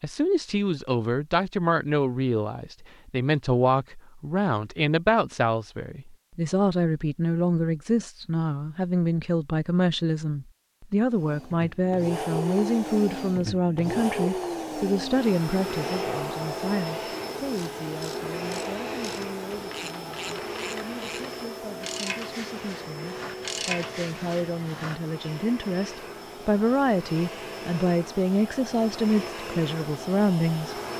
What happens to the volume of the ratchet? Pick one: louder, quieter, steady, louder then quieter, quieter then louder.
louder.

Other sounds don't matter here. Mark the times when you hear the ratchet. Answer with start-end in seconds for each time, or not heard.
17.5-25.0.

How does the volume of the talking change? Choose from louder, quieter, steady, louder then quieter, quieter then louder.
quieter then louder.